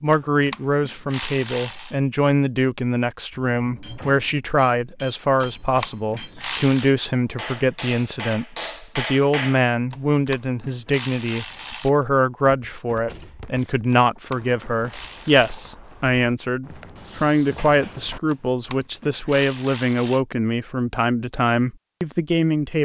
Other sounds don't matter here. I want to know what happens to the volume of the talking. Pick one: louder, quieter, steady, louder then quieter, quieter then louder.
steady.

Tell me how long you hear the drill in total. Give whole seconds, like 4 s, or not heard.
not heard.